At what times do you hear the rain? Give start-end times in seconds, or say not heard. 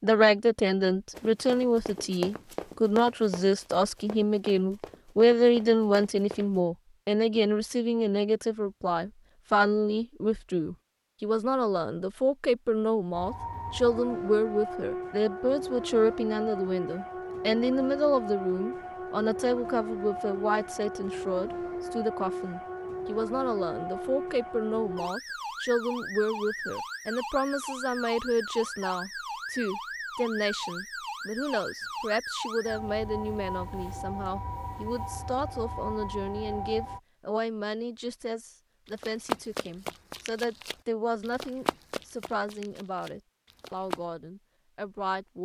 not heard.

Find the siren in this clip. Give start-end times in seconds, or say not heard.
13.1-37.0.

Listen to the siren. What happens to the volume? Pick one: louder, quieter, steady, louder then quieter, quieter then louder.
steady.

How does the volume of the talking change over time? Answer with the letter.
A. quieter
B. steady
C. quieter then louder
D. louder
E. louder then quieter
A.